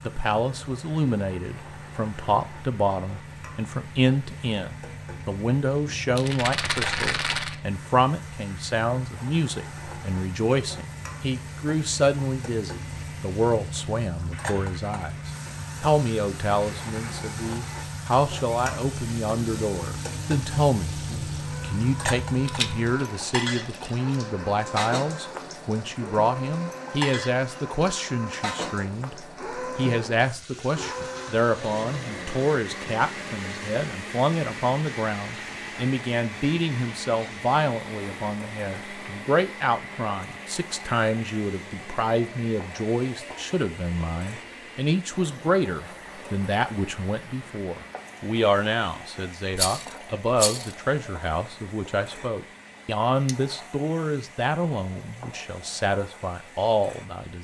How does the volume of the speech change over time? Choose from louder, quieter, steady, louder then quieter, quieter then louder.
steady.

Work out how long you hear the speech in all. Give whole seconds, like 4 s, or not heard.
57 s.